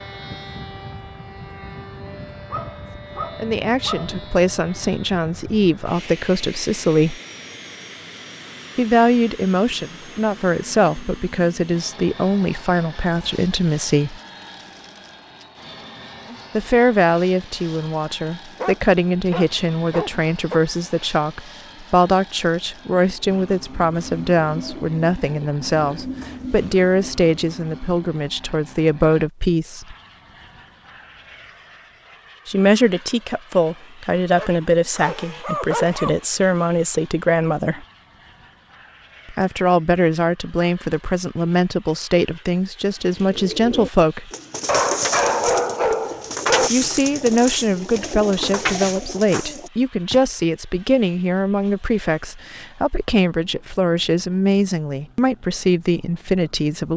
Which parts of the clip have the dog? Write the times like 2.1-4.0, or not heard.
2.5-4.1, 18.6-20.6, 34.4-36.2, 44.6-46.7.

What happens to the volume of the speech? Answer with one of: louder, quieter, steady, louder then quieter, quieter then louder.
steady.